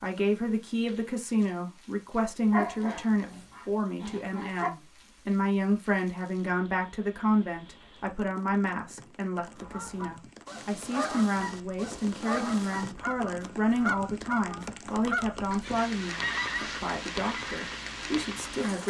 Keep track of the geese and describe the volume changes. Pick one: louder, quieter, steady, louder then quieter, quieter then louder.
steady.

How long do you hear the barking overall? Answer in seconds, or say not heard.
2 s.